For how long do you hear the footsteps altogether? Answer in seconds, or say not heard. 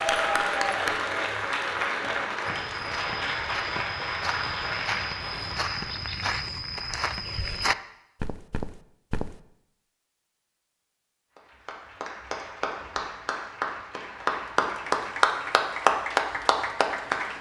7 s.